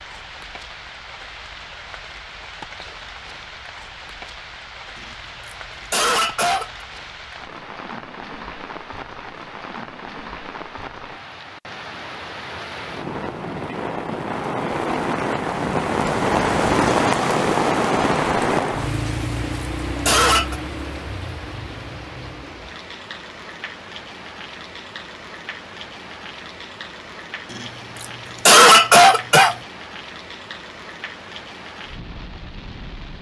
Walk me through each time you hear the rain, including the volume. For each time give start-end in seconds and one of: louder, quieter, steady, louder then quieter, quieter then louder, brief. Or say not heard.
0.0-33.1 louder then quieter.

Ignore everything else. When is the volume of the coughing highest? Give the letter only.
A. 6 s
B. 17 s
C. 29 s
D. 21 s
C.